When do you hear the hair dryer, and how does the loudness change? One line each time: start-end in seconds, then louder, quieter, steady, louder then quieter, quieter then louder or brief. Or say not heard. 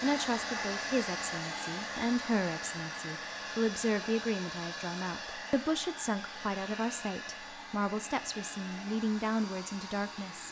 0.0-10.4 quieter.